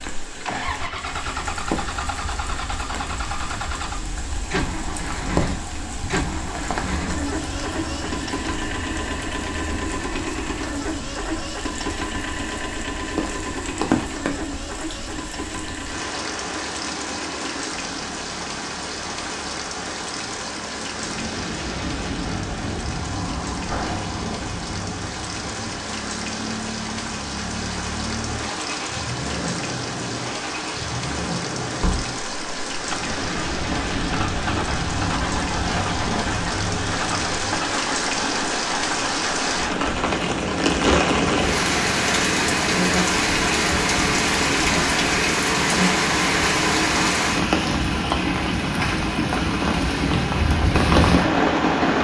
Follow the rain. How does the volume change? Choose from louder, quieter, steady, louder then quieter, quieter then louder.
louder.